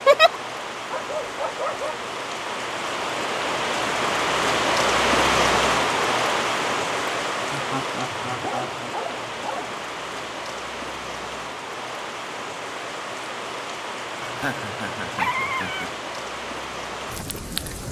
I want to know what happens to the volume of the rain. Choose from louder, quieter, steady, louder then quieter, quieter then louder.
louder then quieter.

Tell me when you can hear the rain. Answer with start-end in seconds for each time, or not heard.
0.0-17.8.